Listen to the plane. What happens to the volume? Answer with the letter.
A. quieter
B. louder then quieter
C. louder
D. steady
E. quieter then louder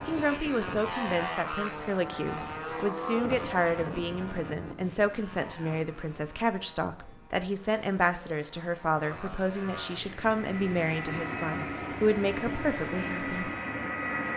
E.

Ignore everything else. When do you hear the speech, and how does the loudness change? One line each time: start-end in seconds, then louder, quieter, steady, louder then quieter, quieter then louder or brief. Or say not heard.
0.1-13.5 steady.